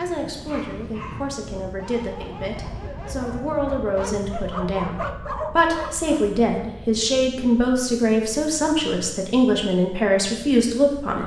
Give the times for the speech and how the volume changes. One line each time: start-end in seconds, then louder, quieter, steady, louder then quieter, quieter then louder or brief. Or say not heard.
0.0-11.2 louder.